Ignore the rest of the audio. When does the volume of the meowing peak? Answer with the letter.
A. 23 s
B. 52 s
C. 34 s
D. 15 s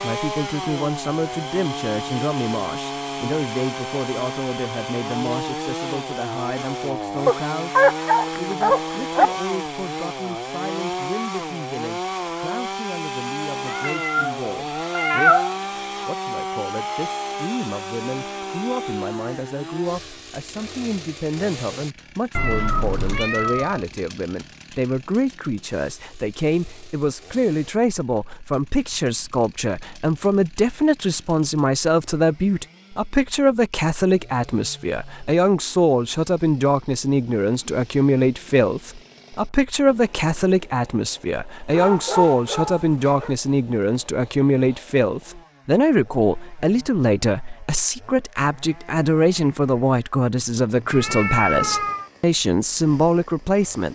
D.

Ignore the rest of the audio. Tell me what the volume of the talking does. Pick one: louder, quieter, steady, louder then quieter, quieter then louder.
louder.